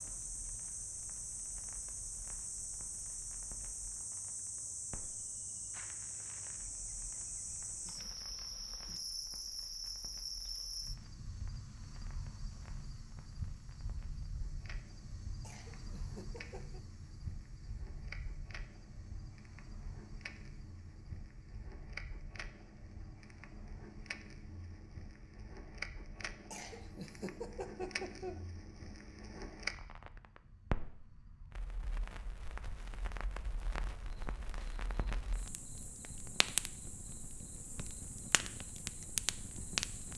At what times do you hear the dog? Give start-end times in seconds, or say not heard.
not heard.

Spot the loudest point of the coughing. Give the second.
28 s.